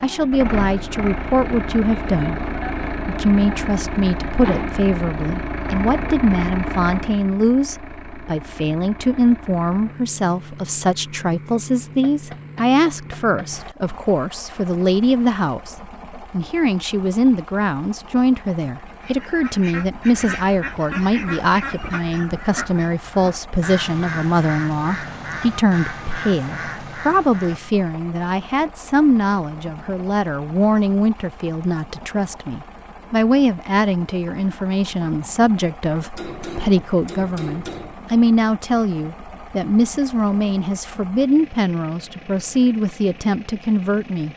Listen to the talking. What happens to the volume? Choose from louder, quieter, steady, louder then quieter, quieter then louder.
steady.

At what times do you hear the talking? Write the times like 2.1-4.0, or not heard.
0.0-44.3.